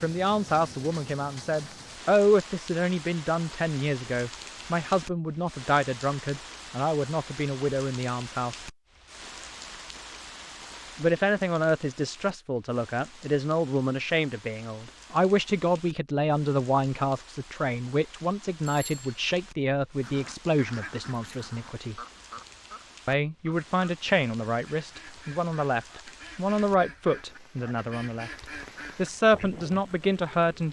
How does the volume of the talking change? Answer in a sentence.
The volume of the talking stays about the same.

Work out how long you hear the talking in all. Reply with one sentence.
You can hear the talking for 27 seconds altogether.